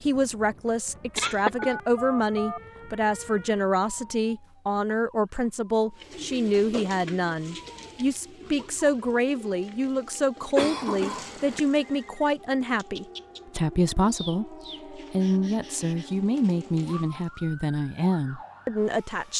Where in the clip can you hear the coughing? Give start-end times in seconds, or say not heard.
1.1-1.8, 10.6-11.6.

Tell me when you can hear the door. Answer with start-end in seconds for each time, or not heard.
not heard.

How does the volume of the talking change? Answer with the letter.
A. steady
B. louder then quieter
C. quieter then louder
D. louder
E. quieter
A.